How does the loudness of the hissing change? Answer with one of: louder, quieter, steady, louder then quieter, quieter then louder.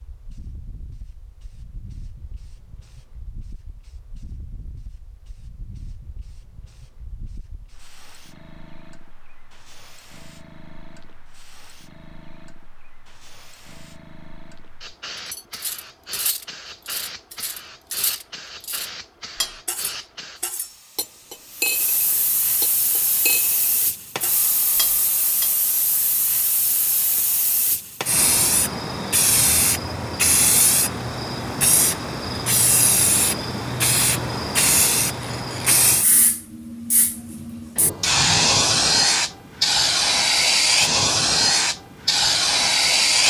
louder.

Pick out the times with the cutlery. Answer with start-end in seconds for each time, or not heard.
15.2-25.5.